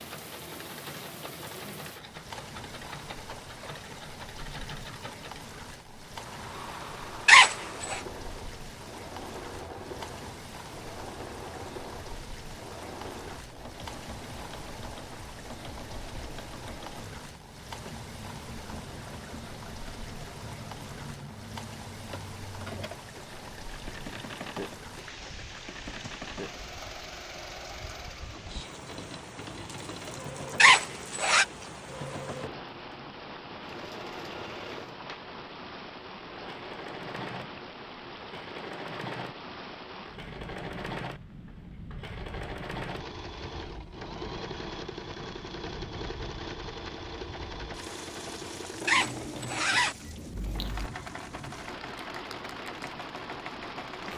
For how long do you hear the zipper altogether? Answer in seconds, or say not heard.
4 s.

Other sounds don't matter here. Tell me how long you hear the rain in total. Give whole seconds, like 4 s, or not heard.
54 s.